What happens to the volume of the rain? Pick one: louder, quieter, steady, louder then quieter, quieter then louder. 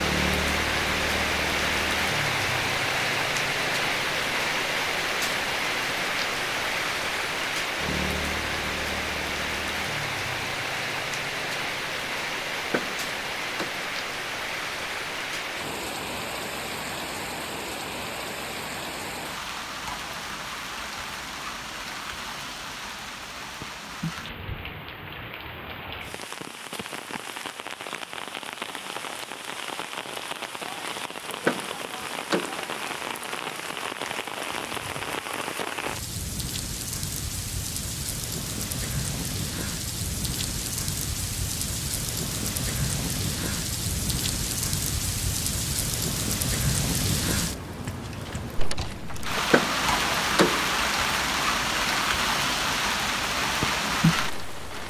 quieter then louder.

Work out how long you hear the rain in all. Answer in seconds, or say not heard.
55 s.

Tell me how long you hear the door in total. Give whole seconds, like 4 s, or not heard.
4 s.